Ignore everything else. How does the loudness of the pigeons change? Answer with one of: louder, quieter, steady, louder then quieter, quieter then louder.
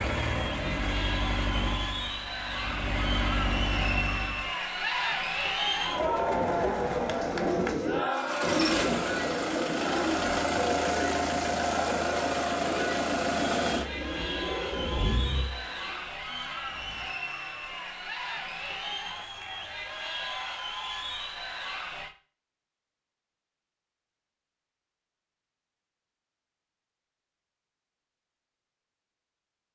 quieter.